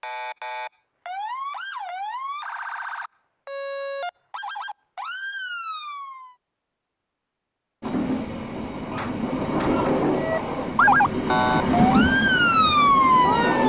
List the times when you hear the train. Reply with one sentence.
The train can be heard from 7.8 to 13.6 s.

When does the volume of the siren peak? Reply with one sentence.
The volume of the siren peaks at 13 seconds.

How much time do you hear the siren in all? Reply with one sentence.
You can hear the siren for 10 seconds altogether.